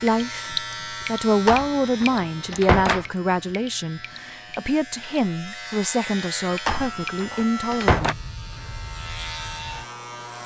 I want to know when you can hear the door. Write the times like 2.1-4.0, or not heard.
1.4-3.0, 6.7-8.2.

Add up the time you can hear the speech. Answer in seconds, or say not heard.
8 s.